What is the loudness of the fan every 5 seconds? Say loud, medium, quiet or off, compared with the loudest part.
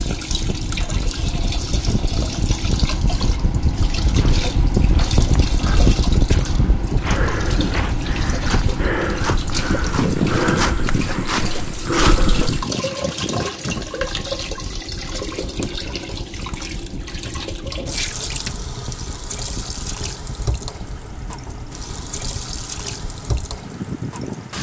loud, loud, loud, quiet, medium.